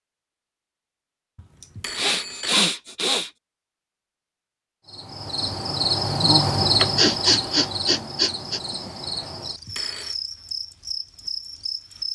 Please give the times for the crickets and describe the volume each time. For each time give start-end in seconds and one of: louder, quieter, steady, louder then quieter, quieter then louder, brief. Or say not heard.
4.8-12.1 quieter.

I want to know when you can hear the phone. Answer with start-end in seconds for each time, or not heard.
1.4-2.6, 9.4-10.2.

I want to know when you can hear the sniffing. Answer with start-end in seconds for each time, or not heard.
1.6-3.3, 6.8-8.6.